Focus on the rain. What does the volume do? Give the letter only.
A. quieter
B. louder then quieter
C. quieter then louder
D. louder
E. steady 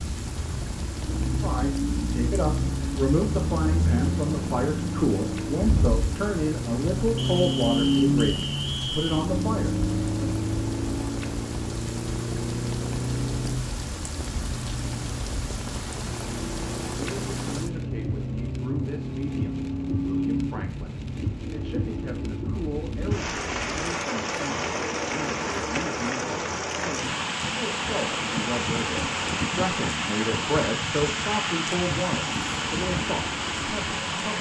D.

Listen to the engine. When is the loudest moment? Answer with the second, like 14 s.
8 s.